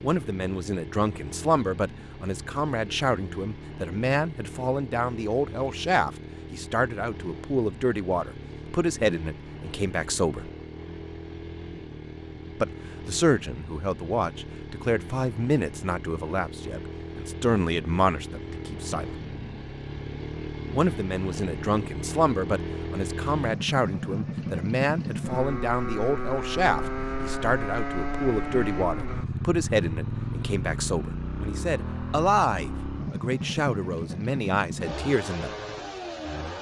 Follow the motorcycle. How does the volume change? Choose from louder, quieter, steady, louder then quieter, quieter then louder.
louder.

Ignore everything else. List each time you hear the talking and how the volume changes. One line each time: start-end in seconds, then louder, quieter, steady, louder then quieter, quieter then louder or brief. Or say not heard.
0.0-10.5 steady
12.6-19.1 steady
20.7-35.5 steady.